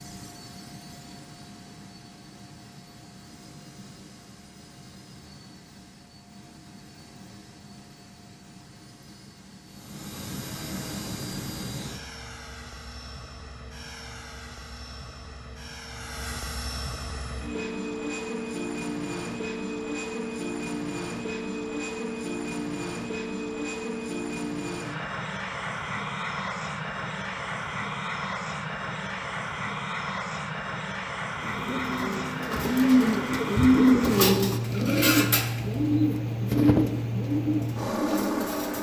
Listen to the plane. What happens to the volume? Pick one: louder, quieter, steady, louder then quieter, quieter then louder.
louder.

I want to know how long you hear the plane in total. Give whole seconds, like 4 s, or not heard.
39 s.